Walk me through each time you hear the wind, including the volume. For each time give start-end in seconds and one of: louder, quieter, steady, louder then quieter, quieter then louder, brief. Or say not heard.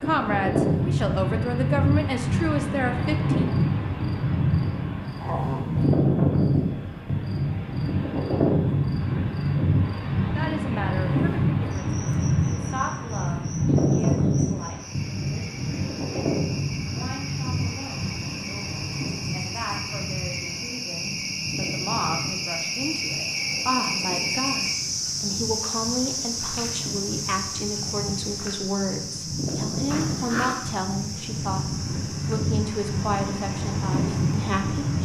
0.0-35.0 quieter then louder.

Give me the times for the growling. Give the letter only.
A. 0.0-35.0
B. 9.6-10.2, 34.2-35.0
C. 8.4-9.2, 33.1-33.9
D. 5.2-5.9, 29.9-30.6
D.